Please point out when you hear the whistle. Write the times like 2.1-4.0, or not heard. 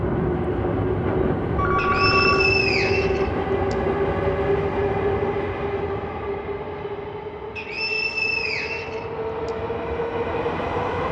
1.8-3.8, 7.5-9.5.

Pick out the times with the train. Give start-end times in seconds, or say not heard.
0.0-11.0.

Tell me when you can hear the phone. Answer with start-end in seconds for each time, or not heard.
1.6-2.4.